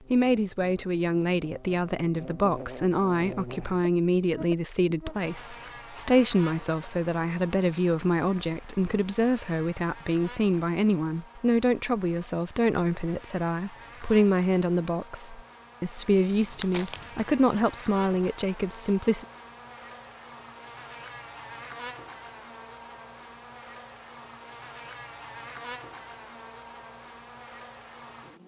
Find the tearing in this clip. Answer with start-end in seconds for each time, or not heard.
16.3-17.3.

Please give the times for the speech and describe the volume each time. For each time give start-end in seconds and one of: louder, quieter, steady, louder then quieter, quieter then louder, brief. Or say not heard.
0.1-19.2 steady.